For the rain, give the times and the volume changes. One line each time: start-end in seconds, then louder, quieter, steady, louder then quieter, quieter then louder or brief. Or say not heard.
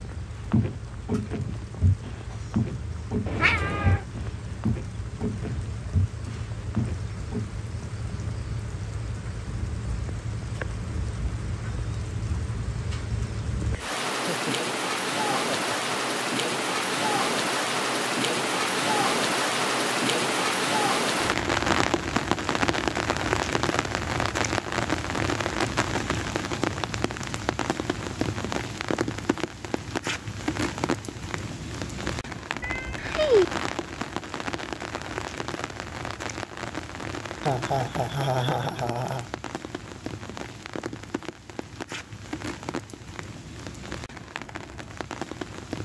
0.0-45.8 louder then quieter.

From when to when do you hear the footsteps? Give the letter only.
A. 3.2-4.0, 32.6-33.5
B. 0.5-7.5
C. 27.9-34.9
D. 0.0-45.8
B.